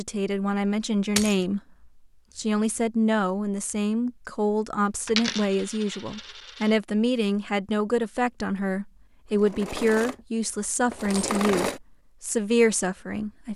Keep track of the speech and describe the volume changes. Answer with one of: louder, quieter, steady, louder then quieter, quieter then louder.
steady.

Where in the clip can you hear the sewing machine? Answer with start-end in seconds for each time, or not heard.
9.2-11.8.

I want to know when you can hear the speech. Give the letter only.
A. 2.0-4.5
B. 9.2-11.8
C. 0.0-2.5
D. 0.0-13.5
D.